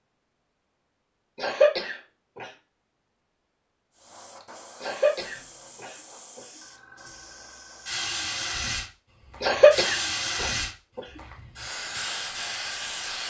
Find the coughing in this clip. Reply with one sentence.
You can hear the coughing from 1.4 to 2.5 s, from 4.8 to 6.4 s and from 9.4 to 11.0 s.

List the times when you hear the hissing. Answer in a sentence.
The hissing can be heard from 3.9 to 13.2 s.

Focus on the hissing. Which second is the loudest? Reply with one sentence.
The loudest moment of the hissing is at 10 seconds.